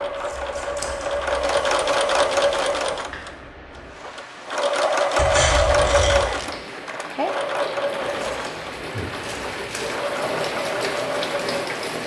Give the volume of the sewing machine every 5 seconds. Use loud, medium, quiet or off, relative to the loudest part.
loud, loud, medium.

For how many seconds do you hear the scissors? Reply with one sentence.
You can hear the scissors for 4 seconds altogether.